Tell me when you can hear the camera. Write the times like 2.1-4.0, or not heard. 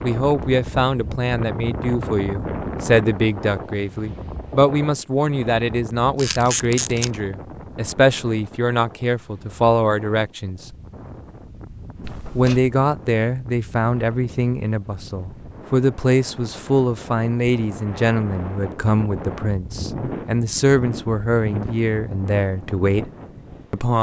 6.2-7.1, 12.0-12.8.